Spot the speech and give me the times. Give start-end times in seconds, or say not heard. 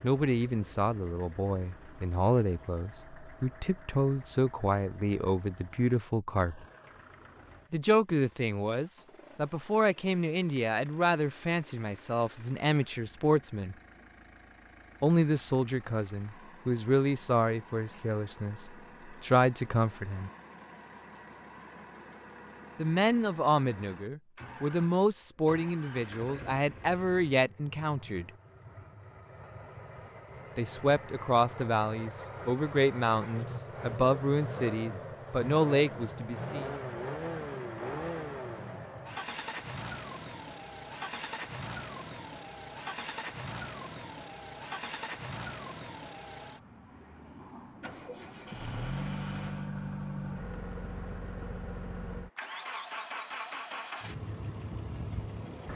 0.0-6.7, 7.7-13.8, 15.0-20.3, 22.8-28.3, 30.6-36.7.